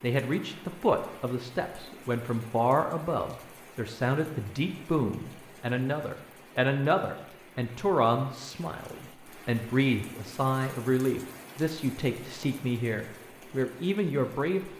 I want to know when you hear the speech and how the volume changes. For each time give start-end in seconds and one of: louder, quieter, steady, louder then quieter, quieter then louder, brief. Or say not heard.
0.0-14.7 steady.